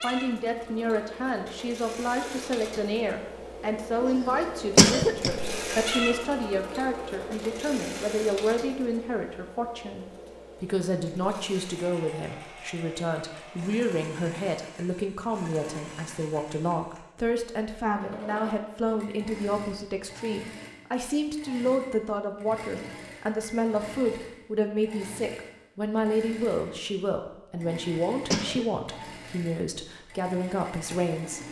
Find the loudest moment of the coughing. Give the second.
5 s.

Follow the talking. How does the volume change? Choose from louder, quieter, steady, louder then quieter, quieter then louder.
steady.